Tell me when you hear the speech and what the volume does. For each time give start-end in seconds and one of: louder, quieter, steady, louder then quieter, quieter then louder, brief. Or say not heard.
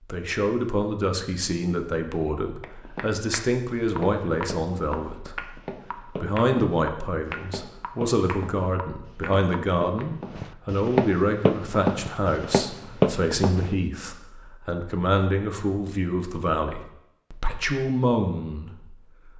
0.1-19.3 steady.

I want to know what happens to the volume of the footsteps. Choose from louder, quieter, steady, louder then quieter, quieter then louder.
louder.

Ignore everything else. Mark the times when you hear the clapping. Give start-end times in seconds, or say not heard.
2.6-10.1.